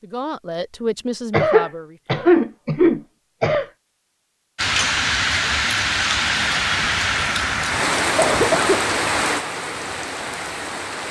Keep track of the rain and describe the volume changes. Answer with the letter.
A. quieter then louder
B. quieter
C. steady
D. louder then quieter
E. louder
B.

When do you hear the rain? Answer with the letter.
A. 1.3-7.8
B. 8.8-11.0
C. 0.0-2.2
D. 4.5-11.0
D.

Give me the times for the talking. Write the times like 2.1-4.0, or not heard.
0.0-2.2.